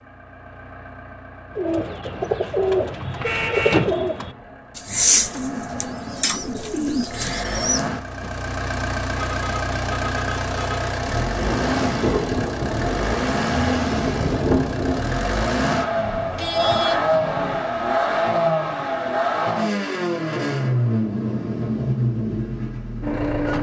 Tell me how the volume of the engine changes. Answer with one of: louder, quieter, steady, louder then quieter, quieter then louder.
louder.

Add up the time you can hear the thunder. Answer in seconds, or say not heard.
4 s.